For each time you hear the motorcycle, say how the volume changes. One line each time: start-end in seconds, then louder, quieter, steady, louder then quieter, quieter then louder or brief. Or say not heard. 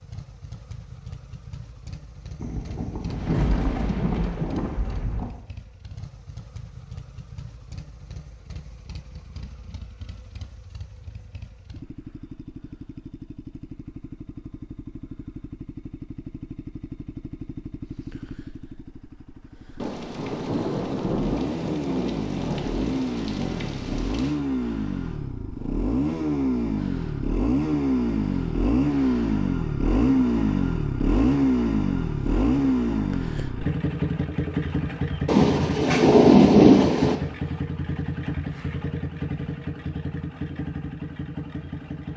0.0-42.1 louder then quieter.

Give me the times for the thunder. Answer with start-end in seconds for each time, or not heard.
2.4-5.4, 19.8-24.4, 35.2-37.1.